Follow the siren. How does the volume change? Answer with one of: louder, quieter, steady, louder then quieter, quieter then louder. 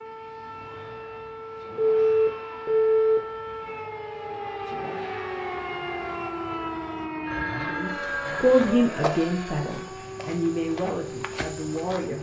louder then quieter.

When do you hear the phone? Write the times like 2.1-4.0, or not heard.
1.8-3.2, 7.2-8.8.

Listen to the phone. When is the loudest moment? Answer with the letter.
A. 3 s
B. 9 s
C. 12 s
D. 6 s
A.